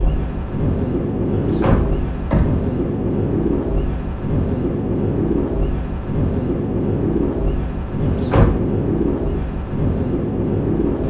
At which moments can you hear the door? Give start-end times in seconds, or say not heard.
1.3-2.5, 8.0-8.6.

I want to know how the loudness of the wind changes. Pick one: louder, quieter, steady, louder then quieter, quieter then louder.
steady.